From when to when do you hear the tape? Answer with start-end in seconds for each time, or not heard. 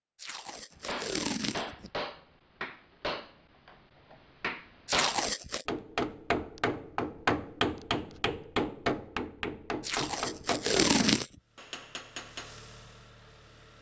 0.2-1.9, 4.8-5.7, 9.8-11.3.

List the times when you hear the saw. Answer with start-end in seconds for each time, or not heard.
not heard.